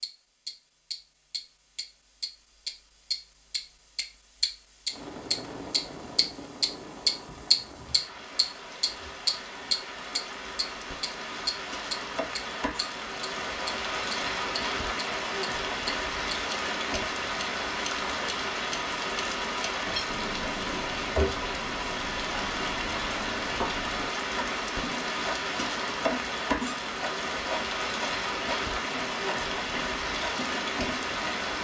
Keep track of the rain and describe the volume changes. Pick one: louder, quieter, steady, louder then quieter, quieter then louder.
louder.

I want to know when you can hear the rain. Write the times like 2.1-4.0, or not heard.
4.9-31.5.